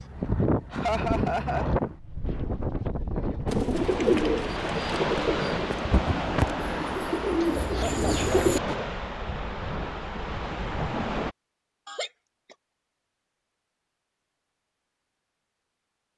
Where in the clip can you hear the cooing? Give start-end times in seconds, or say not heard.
3.5-8.8.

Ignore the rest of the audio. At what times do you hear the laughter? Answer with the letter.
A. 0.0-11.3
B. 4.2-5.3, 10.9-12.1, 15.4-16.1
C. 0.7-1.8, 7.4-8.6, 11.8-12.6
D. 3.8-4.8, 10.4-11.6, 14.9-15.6
C.